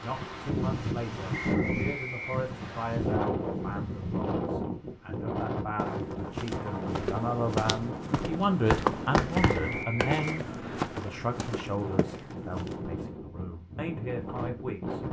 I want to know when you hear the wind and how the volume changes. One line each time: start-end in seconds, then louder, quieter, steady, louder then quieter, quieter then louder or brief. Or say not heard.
0.0-15.0 quieter.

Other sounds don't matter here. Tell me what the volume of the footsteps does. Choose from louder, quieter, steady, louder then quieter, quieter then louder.
louder then quieter.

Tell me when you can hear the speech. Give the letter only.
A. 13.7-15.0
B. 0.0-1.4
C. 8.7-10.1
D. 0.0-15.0
D.